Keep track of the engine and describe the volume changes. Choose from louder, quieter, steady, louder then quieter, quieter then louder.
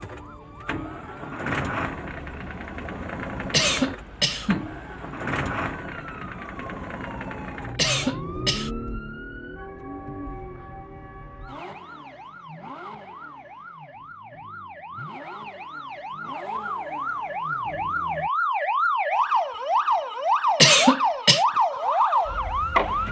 quieter.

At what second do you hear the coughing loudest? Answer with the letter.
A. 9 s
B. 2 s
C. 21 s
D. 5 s
C.